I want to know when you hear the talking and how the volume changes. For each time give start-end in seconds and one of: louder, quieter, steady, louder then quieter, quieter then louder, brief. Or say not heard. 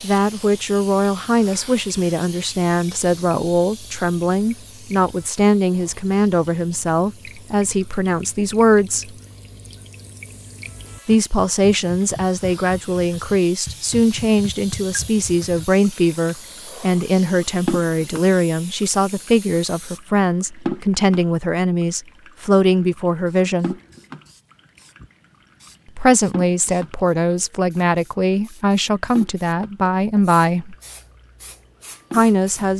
0.0-9.1 steady
11.1-23.8 steady
25.9-30.8 steady
32.1-32.7 brief.